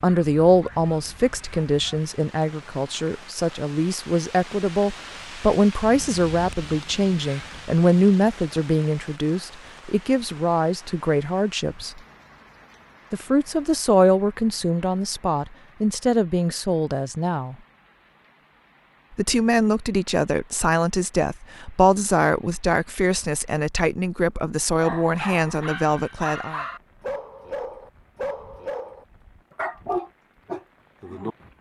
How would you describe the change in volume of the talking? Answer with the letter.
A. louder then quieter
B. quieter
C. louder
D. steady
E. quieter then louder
D.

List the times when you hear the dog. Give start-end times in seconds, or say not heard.
0.0-2.0, 24.8-31.4.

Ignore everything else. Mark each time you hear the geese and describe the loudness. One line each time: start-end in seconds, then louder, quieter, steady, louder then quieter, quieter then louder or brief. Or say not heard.
not heard.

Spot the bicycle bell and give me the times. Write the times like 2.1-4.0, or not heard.
not heard.